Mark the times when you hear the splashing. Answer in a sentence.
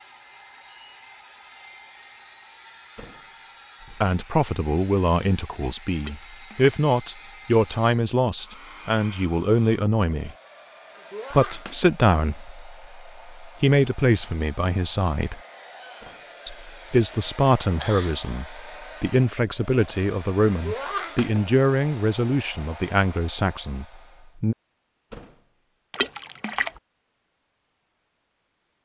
The splashing can be heard from 6.0 to 6.8 s and from 25.9 to 26.7 s.